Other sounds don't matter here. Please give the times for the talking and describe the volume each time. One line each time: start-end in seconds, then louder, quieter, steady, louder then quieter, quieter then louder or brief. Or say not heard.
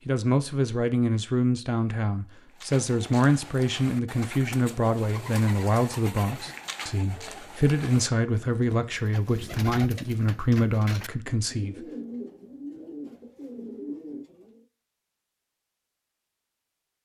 0.1-11.8 steady.